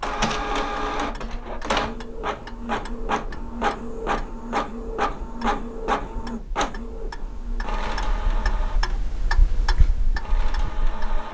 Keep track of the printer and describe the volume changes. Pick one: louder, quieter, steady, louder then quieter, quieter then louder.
quieter.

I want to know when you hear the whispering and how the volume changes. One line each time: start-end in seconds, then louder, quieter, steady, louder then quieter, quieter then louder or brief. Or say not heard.
not heard.